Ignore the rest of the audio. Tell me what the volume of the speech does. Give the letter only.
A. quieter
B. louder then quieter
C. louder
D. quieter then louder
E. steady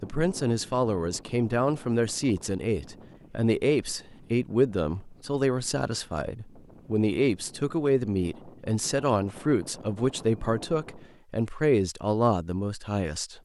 E.